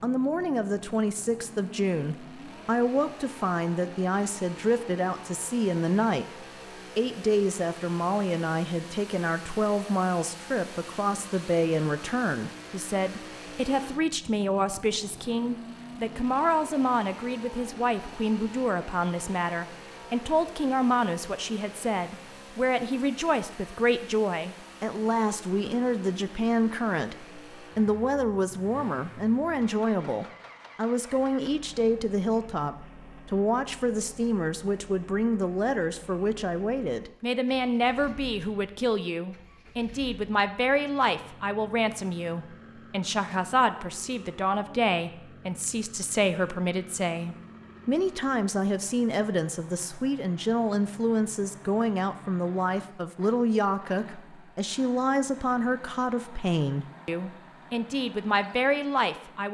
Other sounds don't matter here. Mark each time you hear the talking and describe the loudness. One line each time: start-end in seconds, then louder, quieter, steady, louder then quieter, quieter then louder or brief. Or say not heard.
0.0-59.5 steady.